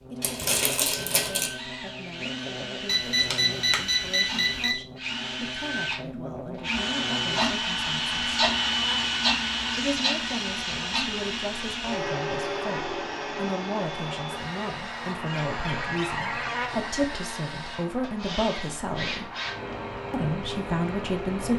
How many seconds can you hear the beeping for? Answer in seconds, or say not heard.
2 s.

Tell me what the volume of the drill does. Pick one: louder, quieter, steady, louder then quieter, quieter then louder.
louder then quieter.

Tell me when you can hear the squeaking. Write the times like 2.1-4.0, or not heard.
0.2-1.5.